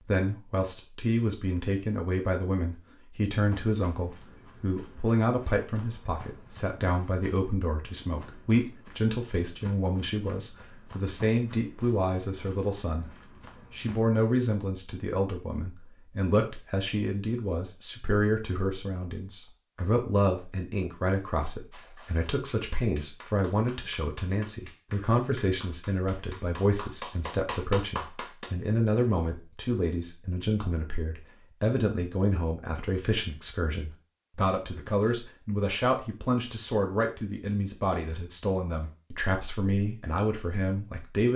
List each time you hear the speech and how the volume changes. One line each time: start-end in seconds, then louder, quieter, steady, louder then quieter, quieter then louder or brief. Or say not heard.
0.0-41.3 steady.